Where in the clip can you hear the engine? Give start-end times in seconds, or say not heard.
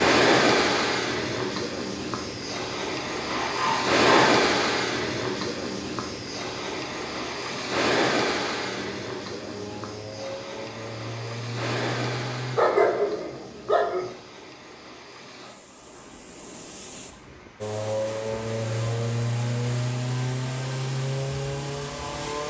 8.6-12.6, 17.6-22.4.